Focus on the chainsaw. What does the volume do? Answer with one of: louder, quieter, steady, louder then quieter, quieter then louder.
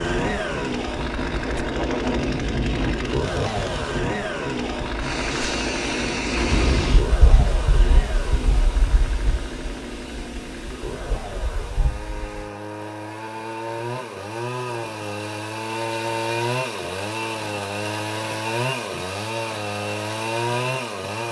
quieter then louder.